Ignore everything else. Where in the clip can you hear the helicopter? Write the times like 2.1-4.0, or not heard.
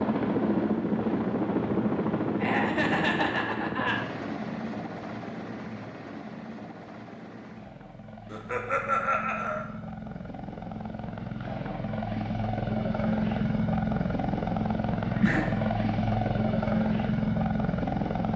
0.0-18.3.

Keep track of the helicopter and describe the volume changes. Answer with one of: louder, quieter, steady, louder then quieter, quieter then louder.
quieter then louder.